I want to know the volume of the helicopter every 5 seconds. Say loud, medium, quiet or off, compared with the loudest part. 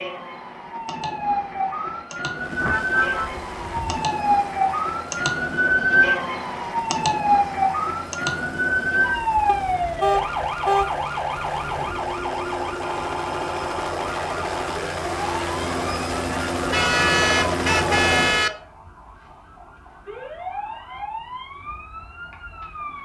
quiet, quiet, medium, loud, off.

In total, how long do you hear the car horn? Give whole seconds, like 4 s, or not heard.
5 s.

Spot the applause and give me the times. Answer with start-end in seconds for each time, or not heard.
not heard.